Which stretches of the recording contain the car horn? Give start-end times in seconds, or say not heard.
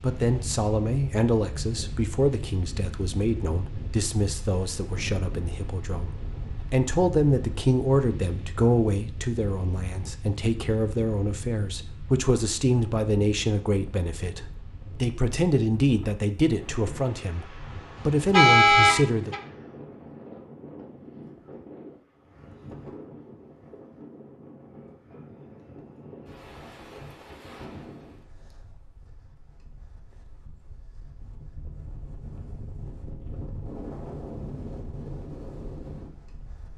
17.9-19.4.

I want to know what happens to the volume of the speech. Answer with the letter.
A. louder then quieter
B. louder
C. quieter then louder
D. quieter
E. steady
E.